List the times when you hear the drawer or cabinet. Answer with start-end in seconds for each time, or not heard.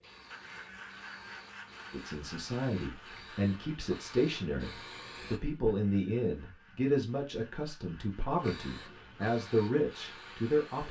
not heard.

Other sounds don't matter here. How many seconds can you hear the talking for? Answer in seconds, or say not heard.
9 s.